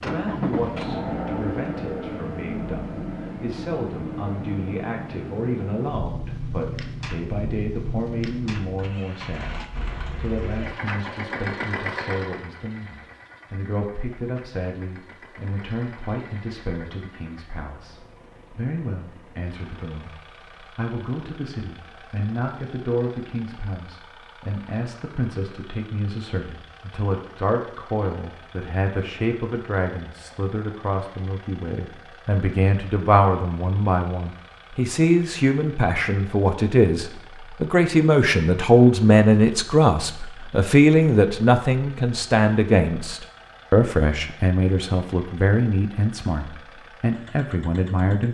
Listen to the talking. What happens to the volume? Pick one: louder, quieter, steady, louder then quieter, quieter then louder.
louder.